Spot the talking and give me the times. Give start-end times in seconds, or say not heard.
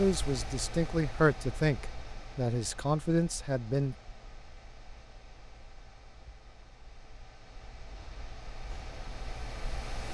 0.0-4.0.